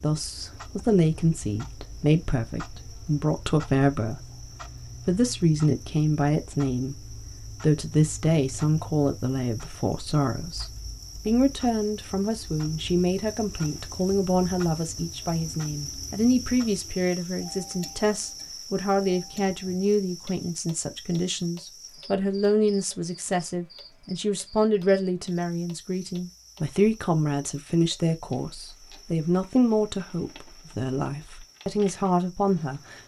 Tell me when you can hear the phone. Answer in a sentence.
The phone can't be heard in this clip.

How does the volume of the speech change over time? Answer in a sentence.
The volume of the speech stays about the same.